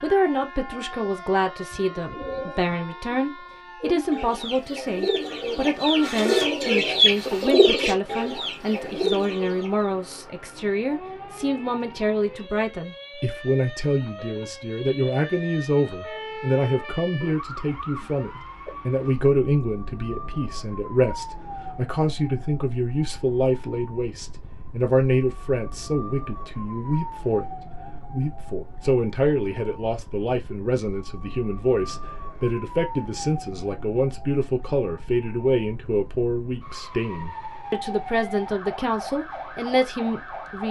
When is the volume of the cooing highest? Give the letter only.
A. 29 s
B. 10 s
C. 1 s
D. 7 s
D.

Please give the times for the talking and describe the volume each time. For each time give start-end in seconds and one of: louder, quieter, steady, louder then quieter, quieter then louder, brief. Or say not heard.
0.0-40.6 steady.